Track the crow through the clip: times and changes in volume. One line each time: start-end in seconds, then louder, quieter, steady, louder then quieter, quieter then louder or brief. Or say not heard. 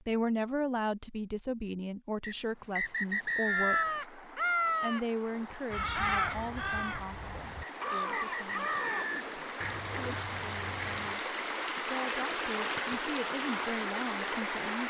3.5-11.2 quieter.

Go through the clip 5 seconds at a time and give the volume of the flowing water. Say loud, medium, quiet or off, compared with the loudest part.
quiet, medium, loud.